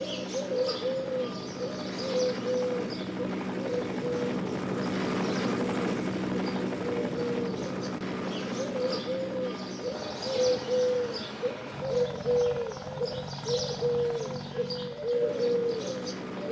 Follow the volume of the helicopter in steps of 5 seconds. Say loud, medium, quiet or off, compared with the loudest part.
loud, loud, medium, medium.